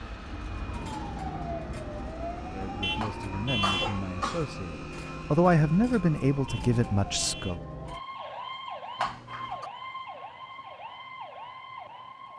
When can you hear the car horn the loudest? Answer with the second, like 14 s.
4 s.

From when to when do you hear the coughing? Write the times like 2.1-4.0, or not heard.
3.0-4.5, 8.9-9.7.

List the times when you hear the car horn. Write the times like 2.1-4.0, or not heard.
2.8-4.0, 6.5-7.6.